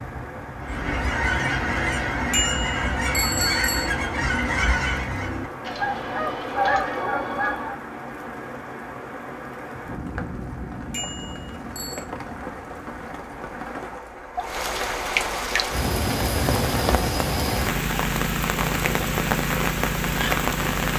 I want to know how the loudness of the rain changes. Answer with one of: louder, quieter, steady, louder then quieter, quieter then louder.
louder.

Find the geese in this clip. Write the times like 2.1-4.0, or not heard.
0.6-7.8.